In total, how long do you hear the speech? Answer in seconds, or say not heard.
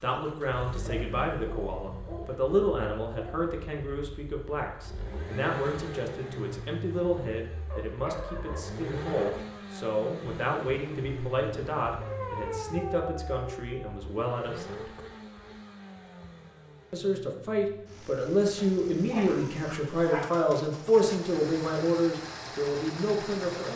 22 s.